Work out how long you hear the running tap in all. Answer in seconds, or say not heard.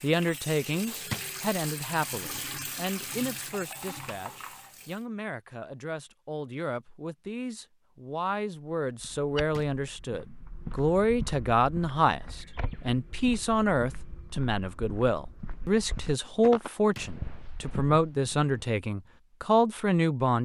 5 s.